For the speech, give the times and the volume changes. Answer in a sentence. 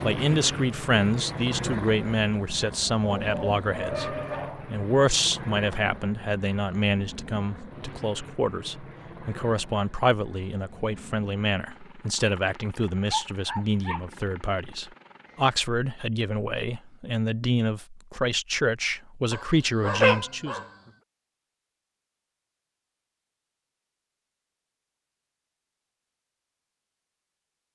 The speech can be heard from 0.0 to 20.6 s, at a steady volume.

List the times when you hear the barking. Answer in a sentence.
The barking can be heard from 3.0 to 4.7 s, from 13.1 to 14.8 s and from 19.3 to 20.6 s.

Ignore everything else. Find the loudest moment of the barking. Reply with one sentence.
The loudest moment of the barking is at 20 seconds.